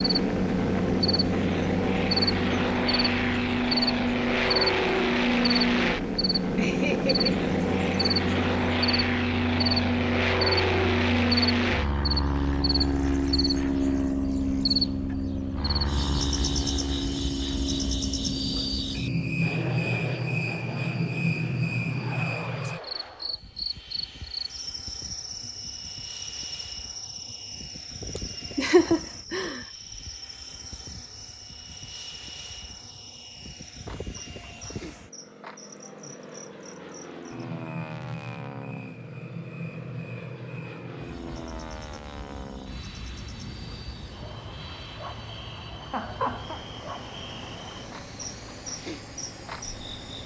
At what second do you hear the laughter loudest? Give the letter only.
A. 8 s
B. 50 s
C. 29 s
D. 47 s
C.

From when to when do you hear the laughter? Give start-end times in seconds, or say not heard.
6.5-7.3, 28.1-29.6, 45.9-46.6.